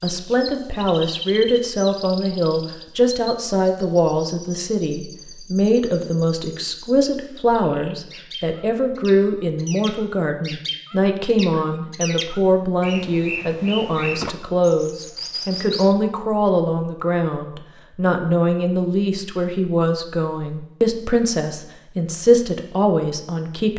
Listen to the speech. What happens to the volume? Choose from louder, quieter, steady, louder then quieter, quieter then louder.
steady.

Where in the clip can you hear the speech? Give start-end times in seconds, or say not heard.
0.0-23.7.